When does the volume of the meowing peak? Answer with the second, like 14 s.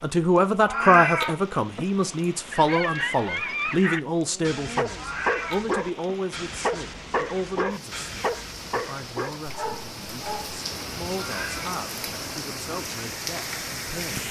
1 s.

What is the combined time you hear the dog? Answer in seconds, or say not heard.
8 s.